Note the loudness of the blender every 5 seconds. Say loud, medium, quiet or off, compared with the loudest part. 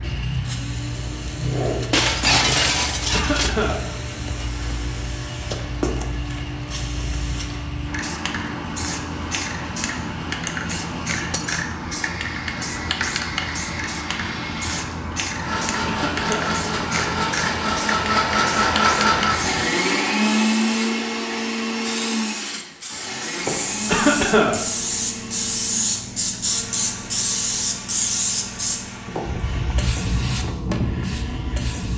quiet, quiet, quiet, loud, loud, quiet, quiet.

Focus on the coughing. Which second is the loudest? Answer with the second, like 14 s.
24 s.